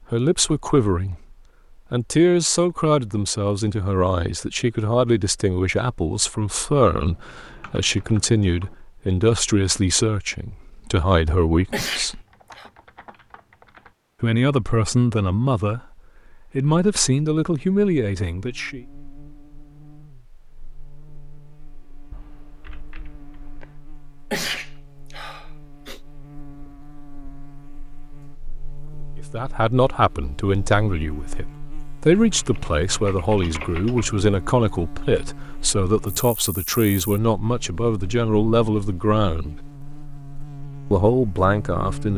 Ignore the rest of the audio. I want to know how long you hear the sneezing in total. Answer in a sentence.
You can hear the sneezing for 3 seconds altogether.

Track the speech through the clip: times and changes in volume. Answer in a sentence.
You can hear the speech from 0.1 to 12.2 s, at a steady volume; briefly from 14.2 to 15.8 s; briefly from 16.6 to 18.9 s; from 29.3 to 39.6 s, at a steady volume; and briefly from 40.9 to 42.1 s.